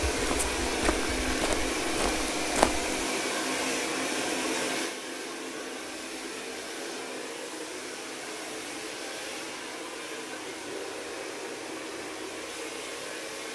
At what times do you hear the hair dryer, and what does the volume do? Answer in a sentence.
The hair dryer can be heard from 0.0 to 13.5 s, getting quieter.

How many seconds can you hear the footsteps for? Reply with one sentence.
You can hear the footsteps for 3 seconds altogether.